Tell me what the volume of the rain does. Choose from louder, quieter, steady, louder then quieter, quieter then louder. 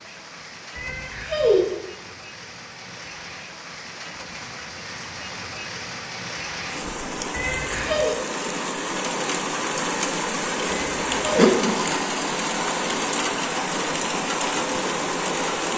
louder.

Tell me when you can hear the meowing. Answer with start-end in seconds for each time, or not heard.
0.8-1.6, 7.3-8.1, 10.7-11.6.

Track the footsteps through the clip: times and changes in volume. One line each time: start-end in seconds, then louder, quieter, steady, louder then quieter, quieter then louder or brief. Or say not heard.
not heard.